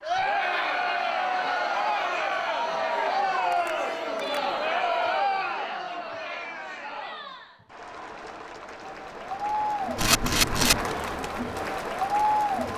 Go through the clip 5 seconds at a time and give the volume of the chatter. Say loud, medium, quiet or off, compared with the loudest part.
loud, medium, loud.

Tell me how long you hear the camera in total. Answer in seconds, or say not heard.
2 s.